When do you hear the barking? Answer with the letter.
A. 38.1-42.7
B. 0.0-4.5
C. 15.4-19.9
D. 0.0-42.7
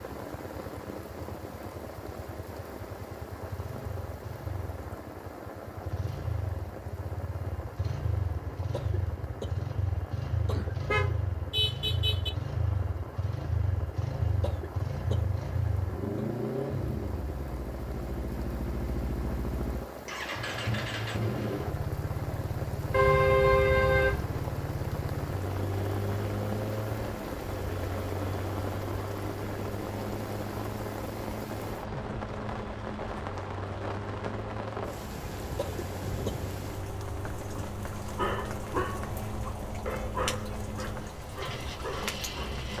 A.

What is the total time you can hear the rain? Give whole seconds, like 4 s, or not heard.
43 s.